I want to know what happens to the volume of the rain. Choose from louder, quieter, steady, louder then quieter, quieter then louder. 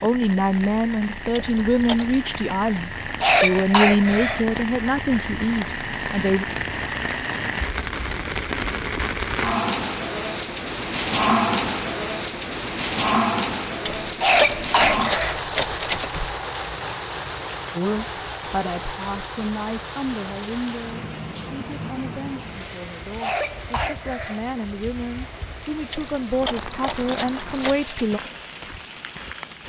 louder then quieter.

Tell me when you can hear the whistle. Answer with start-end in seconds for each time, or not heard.
not heard.